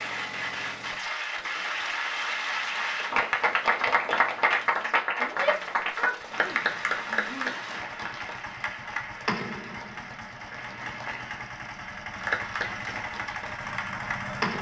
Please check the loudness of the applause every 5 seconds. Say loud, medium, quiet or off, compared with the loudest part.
loud, loud, medium.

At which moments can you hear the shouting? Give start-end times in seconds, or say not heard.
5.2-7.5.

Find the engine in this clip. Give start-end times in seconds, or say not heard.
0.0-14.5.